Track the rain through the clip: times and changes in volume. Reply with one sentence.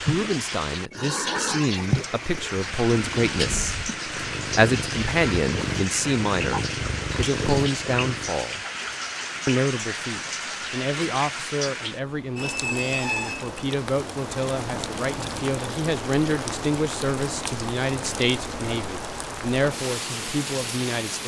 The rain can be heard from 0.0 to 21.2 s, at a steady volume.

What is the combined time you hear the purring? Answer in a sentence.
The purring can be heard for 8 seconds in total.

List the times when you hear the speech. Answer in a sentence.
You can hear the speech from 0.0 to 3.8 s, from 4.5 to 8.6 s and from 9.4 to 21.2 s.